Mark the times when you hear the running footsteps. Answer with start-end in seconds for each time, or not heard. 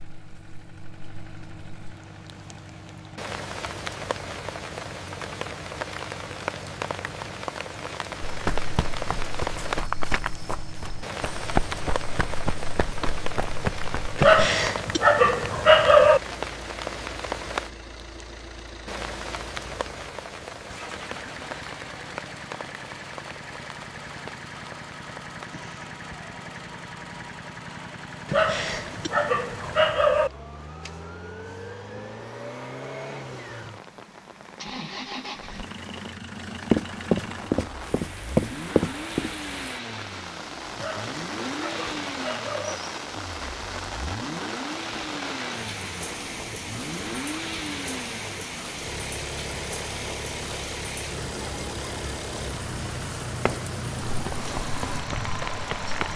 8.2-14.4, 36.7-39.3, 53.5-56.1.